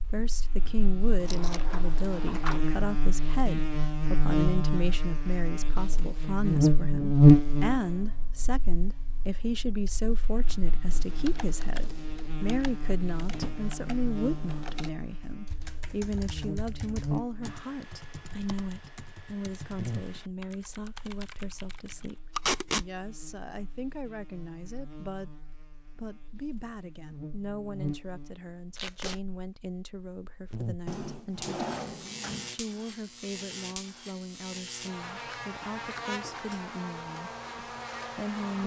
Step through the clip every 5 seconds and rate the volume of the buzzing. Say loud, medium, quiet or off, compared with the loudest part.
medium, loud, quiet, quiet, quiet, quiet, quiet, quiet.